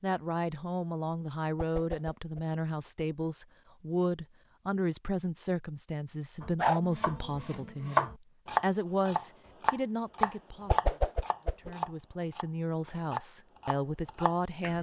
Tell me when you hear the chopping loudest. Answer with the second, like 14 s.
8 s.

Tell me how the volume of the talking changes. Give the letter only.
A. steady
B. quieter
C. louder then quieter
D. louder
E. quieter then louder
A.